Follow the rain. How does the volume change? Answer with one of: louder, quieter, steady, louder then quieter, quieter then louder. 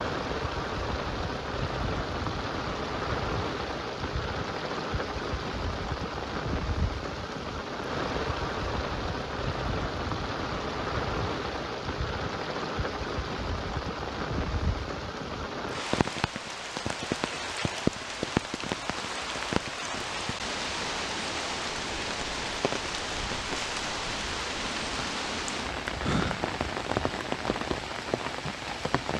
steady.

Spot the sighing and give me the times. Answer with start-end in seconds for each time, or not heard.
26.0-26.6.